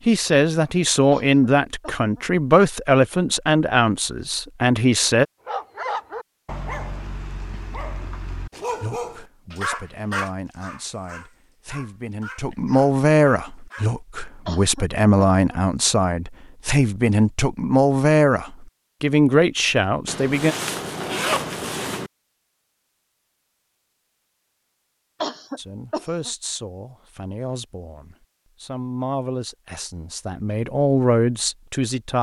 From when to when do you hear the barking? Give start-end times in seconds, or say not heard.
5.5-13.9.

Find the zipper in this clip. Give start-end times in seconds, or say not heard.
20.1-22.1.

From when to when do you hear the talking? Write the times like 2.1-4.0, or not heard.
0.1-5.2, 8.8-20.6, 25.6-32.1.